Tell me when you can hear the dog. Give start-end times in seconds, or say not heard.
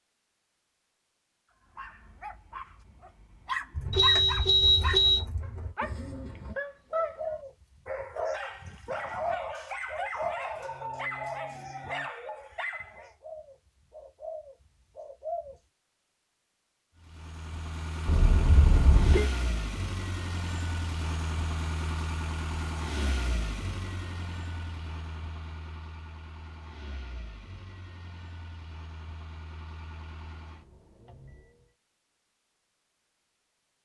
1.8-13.1.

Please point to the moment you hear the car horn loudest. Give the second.
5 s.